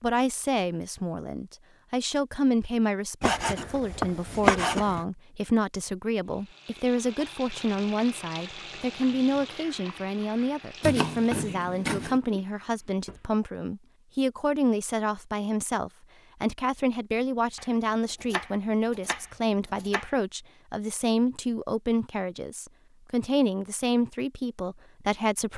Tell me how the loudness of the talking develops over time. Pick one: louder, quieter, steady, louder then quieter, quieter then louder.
steady.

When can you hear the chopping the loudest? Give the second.
5 s.